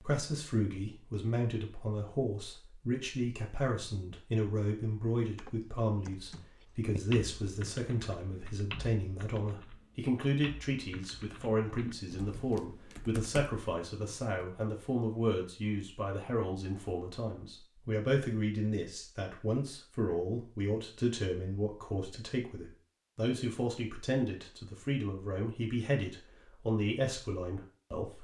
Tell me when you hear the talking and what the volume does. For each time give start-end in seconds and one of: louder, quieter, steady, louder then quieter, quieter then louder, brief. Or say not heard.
0.0-28.1 steady.